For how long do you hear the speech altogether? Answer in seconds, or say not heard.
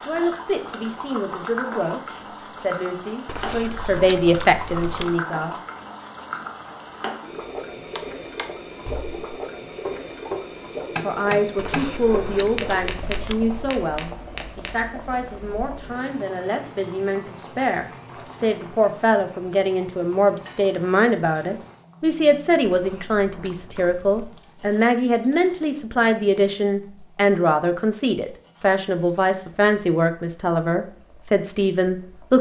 27 s.